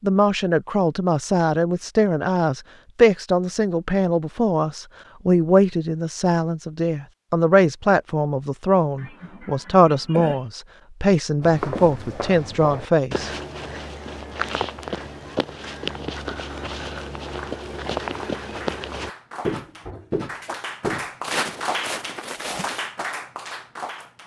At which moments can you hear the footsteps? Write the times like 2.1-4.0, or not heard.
11.4-22.9.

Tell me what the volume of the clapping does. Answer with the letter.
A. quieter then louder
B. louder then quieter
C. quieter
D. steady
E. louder
E.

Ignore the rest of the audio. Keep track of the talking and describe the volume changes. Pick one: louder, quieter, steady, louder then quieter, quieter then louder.
steady.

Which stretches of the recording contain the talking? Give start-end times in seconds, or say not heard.
0.0-13.3.